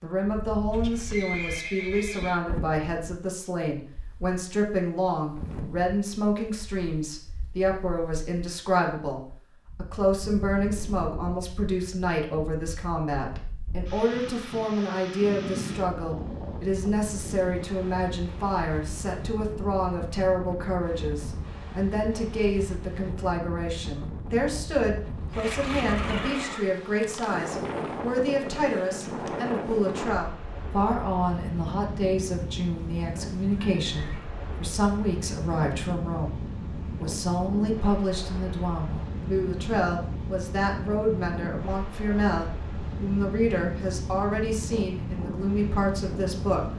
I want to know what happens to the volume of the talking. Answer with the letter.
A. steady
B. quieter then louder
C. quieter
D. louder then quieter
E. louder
A.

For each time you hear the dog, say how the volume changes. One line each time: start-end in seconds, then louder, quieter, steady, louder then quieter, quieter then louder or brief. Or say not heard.
not heard.